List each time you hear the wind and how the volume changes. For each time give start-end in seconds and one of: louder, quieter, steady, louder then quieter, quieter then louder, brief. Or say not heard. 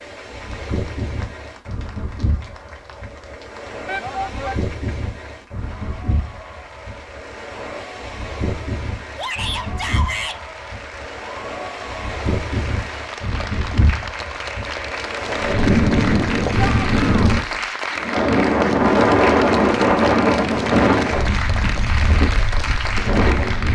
0.0-23.7 louder.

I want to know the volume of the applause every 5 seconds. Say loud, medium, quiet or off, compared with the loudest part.
quiet, quiet, medium, loud, loud.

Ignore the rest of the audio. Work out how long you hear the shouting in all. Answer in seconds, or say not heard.
3 s.